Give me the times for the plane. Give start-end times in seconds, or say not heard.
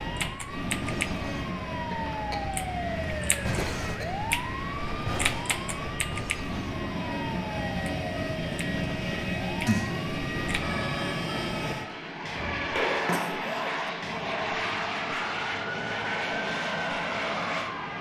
0.0-17.9.